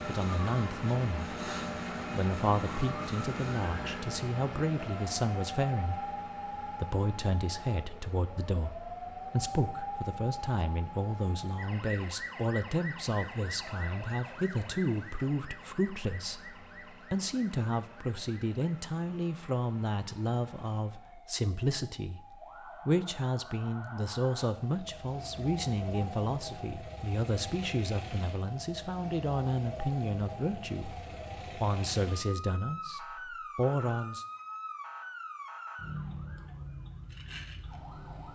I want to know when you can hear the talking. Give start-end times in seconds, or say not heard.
0.1-1.3, 2.1-34.2.